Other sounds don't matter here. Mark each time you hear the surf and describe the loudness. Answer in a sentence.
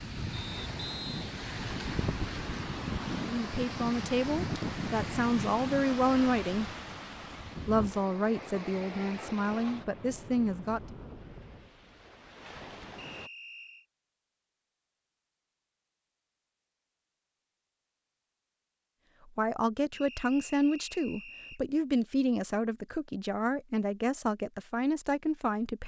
The surf can be heard from 0.0 to 13.3 s, getting quieter.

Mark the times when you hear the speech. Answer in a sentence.
You can hear the speech from 3.2 to 6.7 s, from 7.7 to 10.8 s and from 19.2 to 25.8 s.